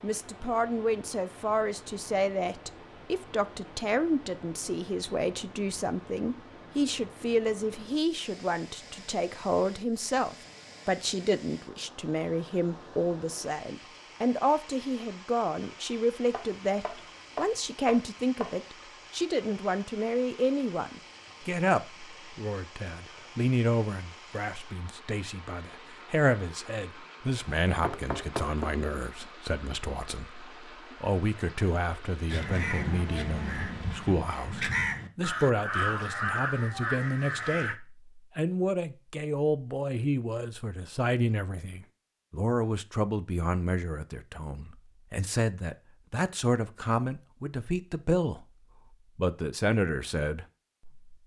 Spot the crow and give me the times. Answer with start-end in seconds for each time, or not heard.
32.2-37.8.